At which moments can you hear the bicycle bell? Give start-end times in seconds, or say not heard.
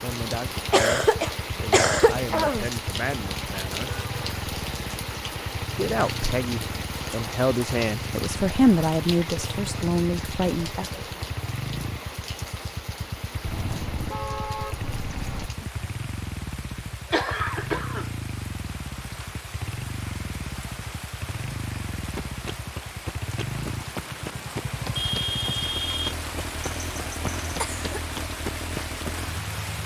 not heard.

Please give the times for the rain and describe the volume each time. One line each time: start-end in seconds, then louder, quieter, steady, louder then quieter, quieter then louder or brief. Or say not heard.
0.0-29.8 quieter then louder.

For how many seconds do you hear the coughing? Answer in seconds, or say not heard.
4 s.